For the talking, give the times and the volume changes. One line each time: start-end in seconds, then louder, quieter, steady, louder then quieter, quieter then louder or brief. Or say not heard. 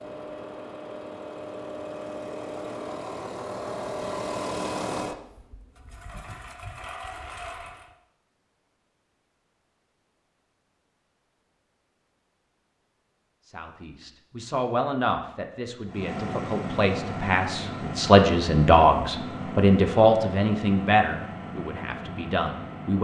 13.4-23.0 louder then quieter.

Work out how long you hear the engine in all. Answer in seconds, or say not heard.
15 s.